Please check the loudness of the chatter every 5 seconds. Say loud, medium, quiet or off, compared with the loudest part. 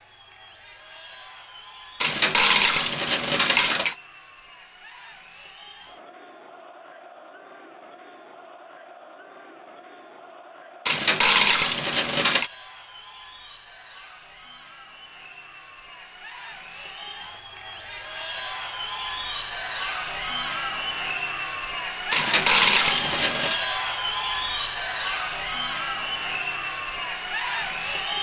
quiet, quiet, quiet, medium, loud, loud.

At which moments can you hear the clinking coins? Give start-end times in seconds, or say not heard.
2.0-4.0, 10.8-12.5, 22.1-23.6.